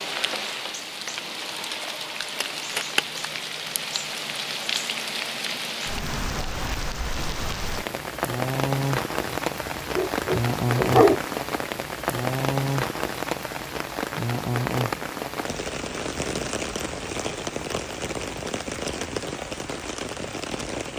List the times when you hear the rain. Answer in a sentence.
The rain can be heard from 0.0 to 20.9 s.